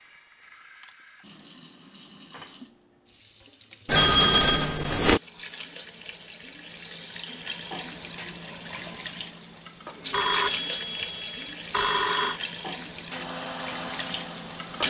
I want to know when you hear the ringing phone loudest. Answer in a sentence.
The volume of the ringing phone peaks at 4 seconds.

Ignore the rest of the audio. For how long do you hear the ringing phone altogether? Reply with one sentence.
The ringing phone can be heard for 4 seconds in total.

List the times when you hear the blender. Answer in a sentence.
The blender can be heard from 13.1 to 14.8 s.